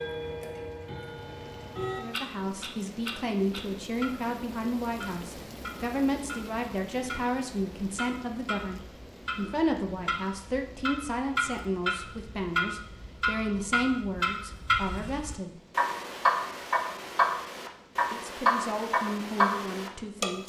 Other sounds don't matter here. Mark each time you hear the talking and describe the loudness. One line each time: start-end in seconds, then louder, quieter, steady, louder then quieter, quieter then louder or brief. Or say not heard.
1.9-15.6 steady
18.1-20.4 brief.